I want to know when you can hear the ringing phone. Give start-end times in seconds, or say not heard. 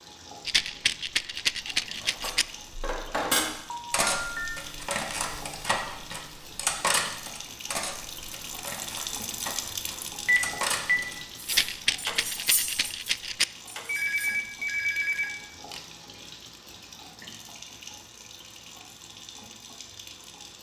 3.7-4.5, 10.2-11.0, 13.8-15.8.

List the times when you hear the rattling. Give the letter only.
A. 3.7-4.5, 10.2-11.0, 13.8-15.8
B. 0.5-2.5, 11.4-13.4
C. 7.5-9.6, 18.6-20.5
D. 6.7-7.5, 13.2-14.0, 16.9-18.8
B.